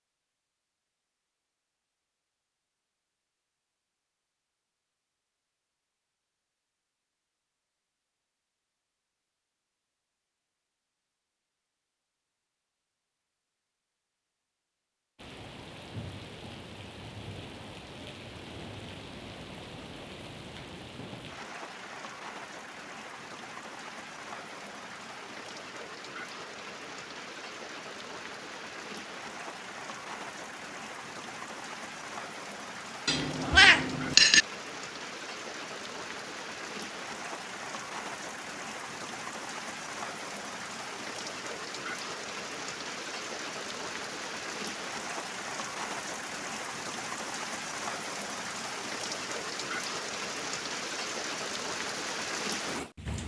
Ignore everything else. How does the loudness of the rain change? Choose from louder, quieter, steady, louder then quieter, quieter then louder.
louder.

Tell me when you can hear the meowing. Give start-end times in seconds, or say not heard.
33.0-34.5.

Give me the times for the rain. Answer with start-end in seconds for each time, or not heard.
15.2-53.2.